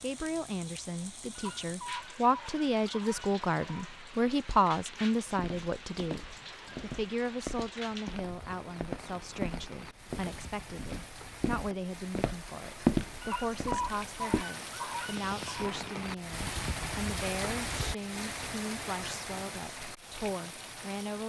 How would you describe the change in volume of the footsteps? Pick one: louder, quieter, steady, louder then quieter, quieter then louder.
louder.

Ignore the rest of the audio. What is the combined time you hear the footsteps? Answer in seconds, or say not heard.
9 s.